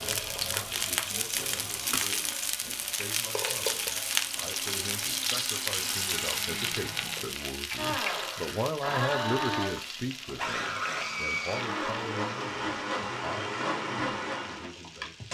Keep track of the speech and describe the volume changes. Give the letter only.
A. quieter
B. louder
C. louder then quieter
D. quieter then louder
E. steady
C.